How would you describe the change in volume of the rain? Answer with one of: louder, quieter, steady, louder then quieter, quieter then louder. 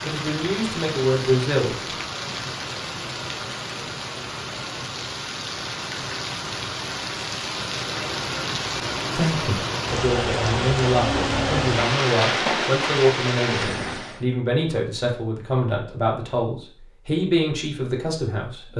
louder.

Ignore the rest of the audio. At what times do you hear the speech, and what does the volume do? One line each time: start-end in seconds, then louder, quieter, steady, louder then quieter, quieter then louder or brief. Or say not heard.
0.0-1.8 brief
9.2-18.7 steady.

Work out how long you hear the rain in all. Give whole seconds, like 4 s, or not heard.
14 s.